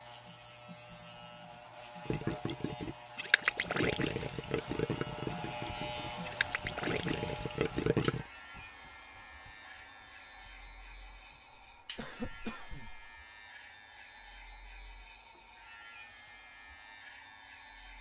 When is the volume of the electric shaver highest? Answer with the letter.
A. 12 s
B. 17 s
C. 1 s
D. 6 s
D.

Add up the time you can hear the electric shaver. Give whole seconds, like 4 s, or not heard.
18 s.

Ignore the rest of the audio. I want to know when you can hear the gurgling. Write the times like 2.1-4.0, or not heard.
2.0-8.2.